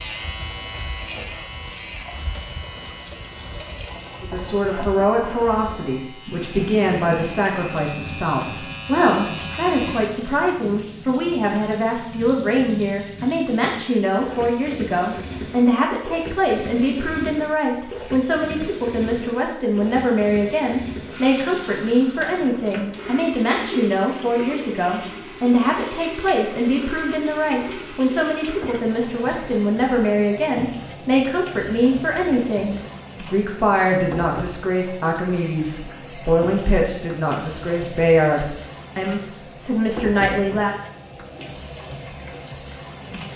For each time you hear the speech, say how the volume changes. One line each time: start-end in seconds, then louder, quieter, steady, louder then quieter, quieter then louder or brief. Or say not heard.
4.2-40.8 steady.